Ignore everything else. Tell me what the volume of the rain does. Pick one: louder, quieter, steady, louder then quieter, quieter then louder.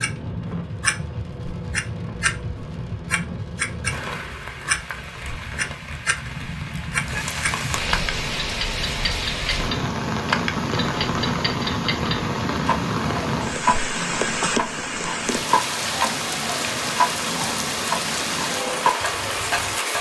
louder.